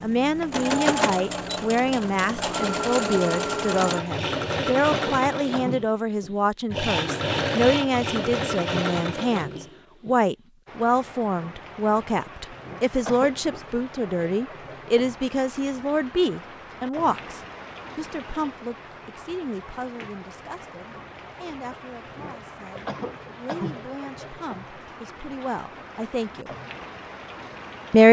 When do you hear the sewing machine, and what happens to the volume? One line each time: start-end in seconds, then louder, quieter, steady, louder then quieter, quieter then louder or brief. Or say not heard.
0.0-10.2 steady.